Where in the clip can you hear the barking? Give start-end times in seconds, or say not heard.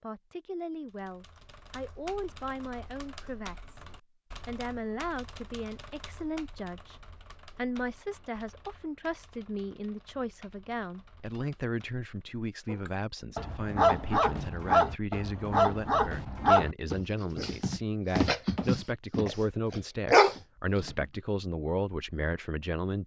12.7-21.1.